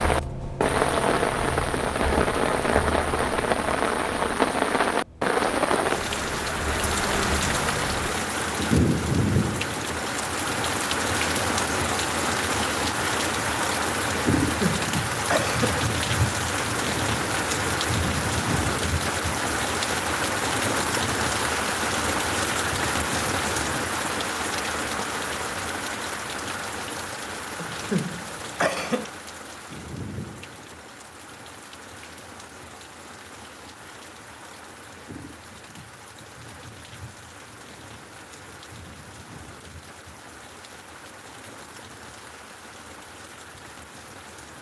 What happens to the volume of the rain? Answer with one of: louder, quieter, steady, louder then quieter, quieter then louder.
quieter.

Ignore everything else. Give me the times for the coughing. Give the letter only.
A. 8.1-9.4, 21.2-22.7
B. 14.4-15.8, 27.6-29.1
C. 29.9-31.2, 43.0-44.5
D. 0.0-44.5
B.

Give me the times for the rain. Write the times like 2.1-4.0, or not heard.
0.0-44.5.